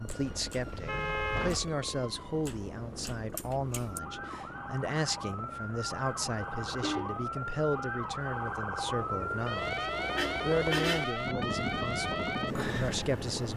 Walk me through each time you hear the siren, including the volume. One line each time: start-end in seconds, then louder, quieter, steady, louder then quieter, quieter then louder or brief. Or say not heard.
0.0-13.5 louder.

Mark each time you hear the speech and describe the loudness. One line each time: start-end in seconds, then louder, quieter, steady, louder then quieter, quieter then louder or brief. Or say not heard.
0.0-13.5 steady.